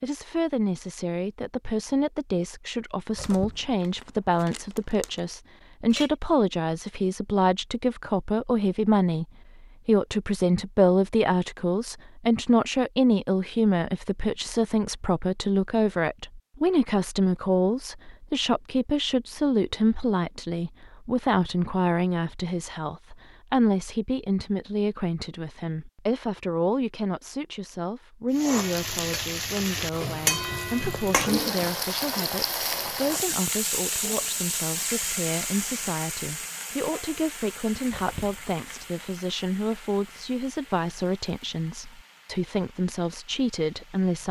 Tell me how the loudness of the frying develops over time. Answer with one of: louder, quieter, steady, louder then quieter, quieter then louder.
quieter.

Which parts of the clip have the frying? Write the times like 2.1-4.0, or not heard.
28.3-44.2.